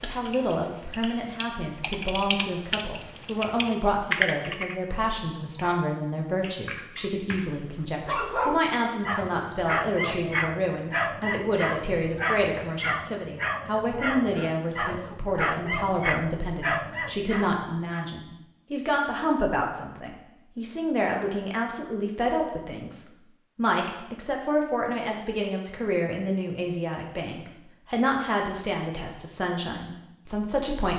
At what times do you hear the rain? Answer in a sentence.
The rain can't be heard in this clip.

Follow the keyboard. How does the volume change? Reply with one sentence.
The volume of the keyboard goes up, then down.